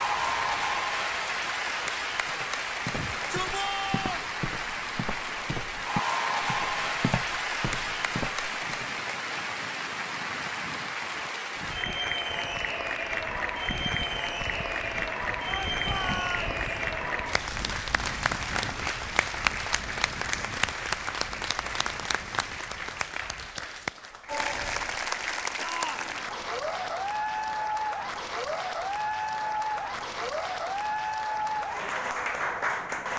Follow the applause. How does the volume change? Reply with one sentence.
The loudness of the applause stays about the same.